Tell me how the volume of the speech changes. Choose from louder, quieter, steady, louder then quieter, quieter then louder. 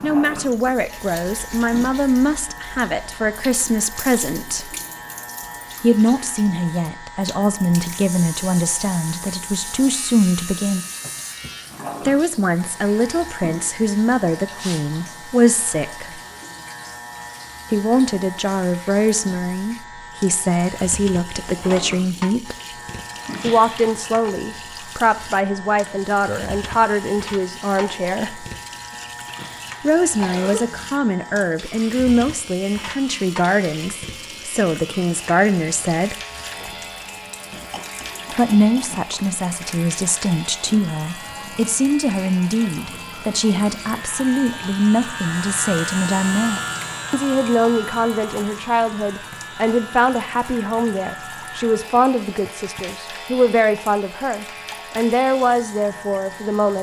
steady.